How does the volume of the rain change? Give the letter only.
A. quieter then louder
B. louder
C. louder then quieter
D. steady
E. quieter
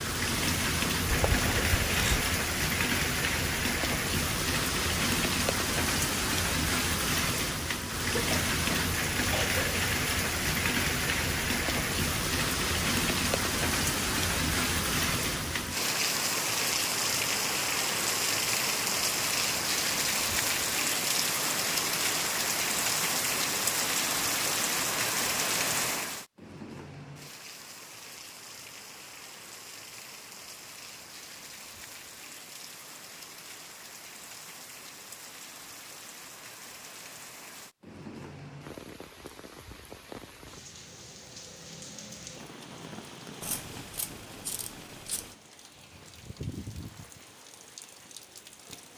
E.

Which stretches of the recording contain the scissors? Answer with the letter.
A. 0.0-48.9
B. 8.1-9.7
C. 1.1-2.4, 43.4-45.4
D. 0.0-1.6
C.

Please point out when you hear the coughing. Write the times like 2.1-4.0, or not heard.
8.1-9.7.